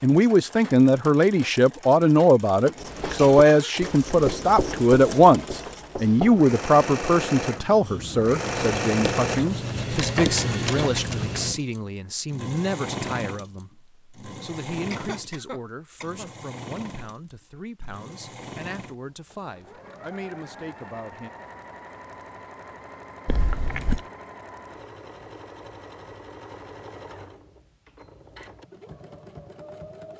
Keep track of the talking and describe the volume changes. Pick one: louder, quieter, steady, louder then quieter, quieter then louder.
quieter.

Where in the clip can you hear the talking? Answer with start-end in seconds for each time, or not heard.
0.0-21.3.